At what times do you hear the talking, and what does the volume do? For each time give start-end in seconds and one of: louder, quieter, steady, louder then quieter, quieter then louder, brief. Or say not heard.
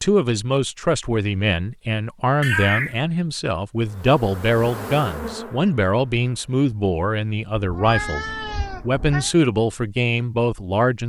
0.0-11.0 steady.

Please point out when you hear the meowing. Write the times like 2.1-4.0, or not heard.
2.4-3.0, 7.5-9.3.